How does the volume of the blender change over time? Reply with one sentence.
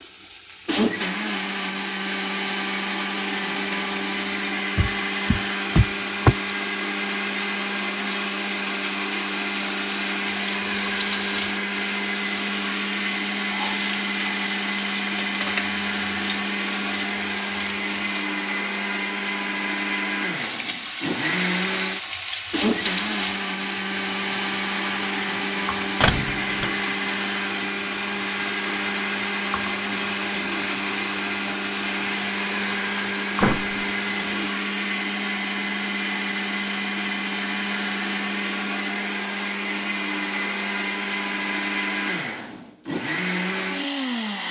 The loudness of the blender stays about the same.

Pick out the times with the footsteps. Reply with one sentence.
The footsteps can't be heard in this clip.